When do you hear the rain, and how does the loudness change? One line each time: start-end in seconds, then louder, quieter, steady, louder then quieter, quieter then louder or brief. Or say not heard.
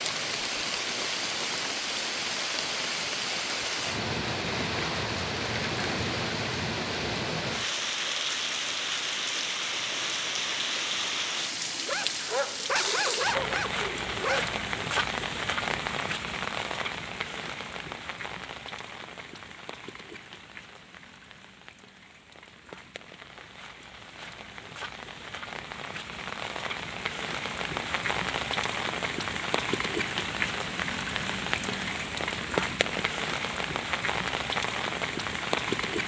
0.0-36.0 quieter then louder.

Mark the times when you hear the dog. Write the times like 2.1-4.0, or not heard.
11.8-14.5.